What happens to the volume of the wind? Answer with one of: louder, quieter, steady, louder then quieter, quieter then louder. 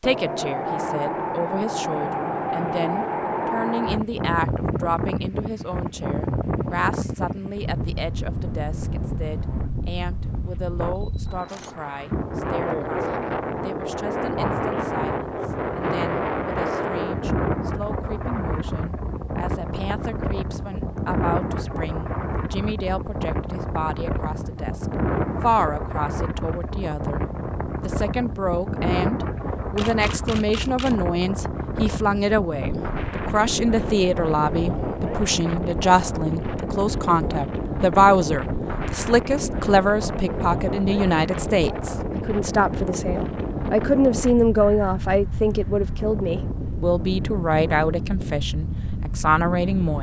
steady.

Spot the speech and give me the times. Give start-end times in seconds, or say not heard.
0.0-49.9.